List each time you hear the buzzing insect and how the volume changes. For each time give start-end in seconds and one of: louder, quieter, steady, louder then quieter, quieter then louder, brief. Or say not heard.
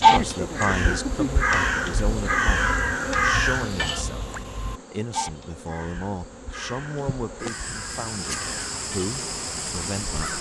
0.0-10.3 quieter then louder.